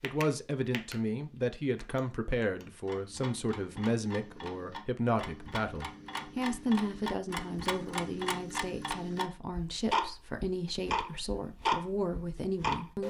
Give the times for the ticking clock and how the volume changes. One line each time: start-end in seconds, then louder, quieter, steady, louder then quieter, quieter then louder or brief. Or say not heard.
0.0-0.9 brief
1.8-13.0 louder.